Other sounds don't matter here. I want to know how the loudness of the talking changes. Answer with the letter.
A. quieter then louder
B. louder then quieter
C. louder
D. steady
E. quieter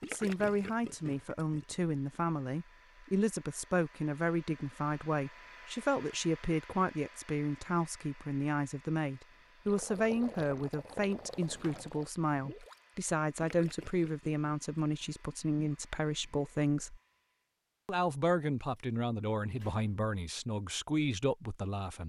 D.